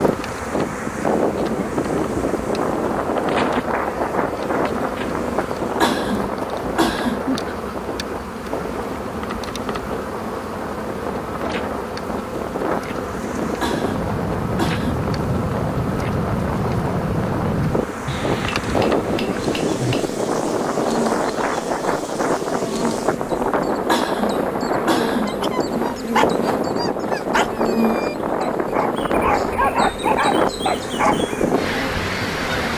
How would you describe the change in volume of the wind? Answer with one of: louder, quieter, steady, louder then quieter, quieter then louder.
quieter then louder.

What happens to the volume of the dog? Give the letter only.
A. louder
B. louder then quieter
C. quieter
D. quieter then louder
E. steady
D.